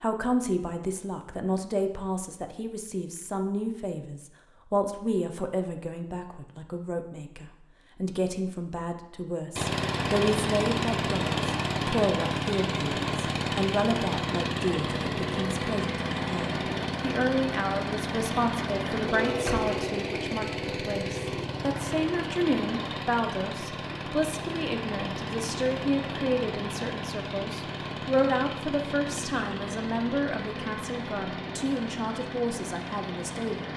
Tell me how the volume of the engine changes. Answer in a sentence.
The volume of the engine goes down.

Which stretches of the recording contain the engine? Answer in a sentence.
You can hear the engine from 9.6 to 33.7 s.